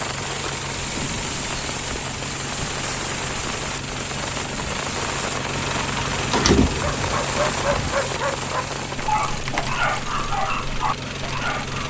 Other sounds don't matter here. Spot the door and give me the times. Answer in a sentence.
The door can be heard from 6.3 to 6.9 s.